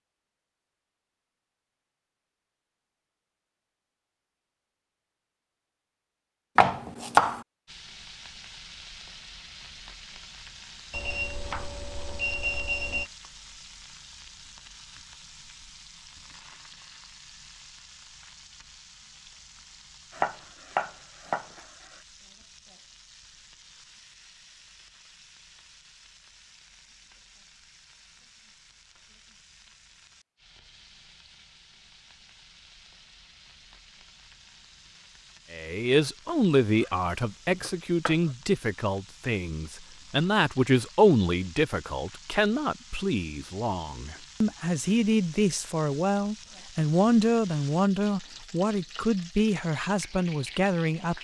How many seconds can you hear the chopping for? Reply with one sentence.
The chopping can be heard for 4 seconds in total.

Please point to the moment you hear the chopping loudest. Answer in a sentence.
The volume of the chopping peaks at 7 seconds.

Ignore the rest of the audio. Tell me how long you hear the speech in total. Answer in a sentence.
You can hear the speech for 16 seconds altogether.